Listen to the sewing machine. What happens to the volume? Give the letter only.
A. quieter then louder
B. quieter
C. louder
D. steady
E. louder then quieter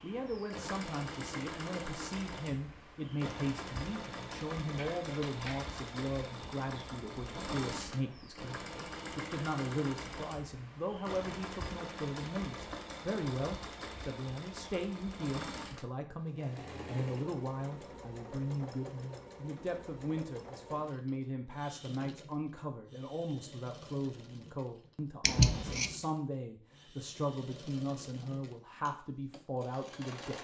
B.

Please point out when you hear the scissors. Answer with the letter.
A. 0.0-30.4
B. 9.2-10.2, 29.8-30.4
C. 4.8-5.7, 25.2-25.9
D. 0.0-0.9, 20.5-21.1
C.